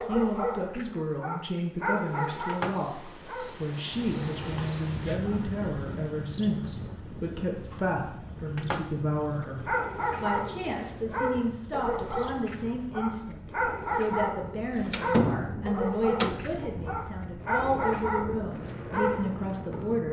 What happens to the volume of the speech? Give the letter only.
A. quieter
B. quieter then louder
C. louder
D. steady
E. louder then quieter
D.